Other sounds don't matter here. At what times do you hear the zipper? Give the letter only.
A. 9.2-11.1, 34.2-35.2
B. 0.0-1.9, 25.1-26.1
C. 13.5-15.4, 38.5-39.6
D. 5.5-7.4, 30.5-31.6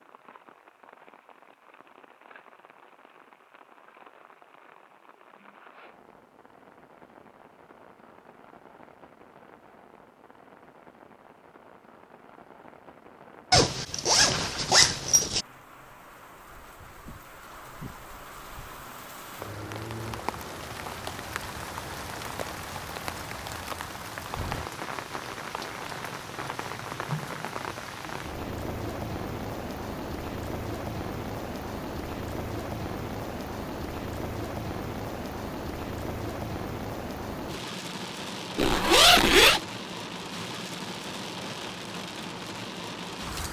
C.